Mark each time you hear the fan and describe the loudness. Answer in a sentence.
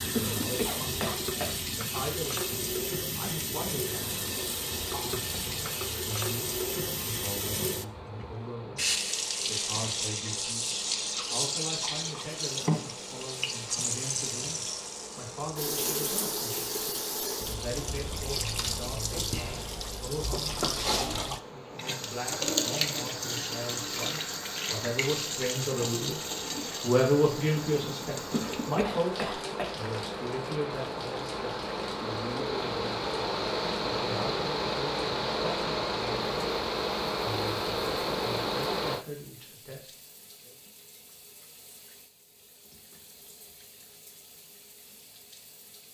You can hear the fan from 0.0 to 39.0 s, getting louder.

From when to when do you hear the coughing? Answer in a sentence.
The coughing can be heard from 0.1 to 1.6 s and from 28.3 to 29.8 s.